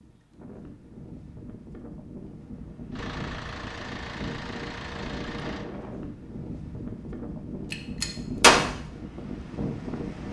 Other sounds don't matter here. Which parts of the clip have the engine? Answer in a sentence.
The engine can be heard from 2.9 to 5.7 s.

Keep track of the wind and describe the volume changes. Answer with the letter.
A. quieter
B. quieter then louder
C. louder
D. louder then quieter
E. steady
C.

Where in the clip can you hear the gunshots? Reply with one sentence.
The gunshots can be heard from 7.7 to 8.6 s.